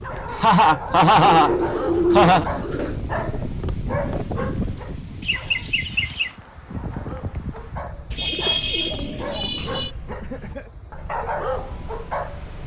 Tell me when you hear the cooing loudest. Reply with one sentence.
The volume of the cooing peaks at 2 seconds.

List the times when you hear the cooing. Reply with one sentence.
You can hear the cooing from 1.2 to 3.0 s and from 8.1 to 9.9 s.